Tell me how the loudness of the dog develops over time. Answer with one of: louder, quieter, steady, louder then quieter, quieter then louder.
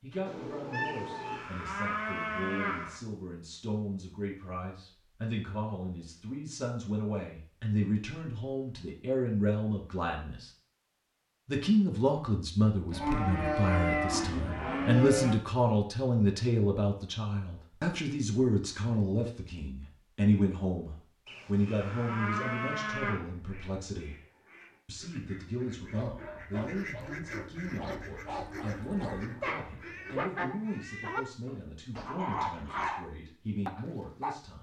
louder.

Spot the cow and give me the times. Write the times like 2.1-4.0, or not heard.
0.8-3.0, 12.9-15.3, 21.2-23.1, 28.0-29.6.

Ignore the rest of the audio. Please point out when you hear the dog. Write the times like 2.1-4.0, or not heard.
25.8-34.4.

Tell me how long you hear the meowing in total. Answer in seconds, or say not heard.
4 s.